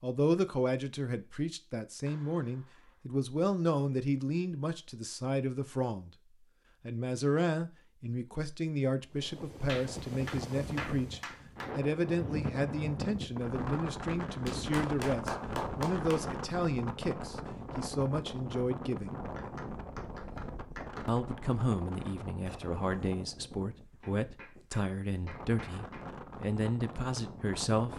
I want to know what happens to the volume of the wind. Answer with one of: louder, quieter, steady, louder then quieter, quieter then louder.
quieter.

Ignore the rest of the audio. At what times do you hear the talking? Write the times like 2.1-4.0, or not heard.
0.0-6.1, 6.8-19.1, 21.1-27.9.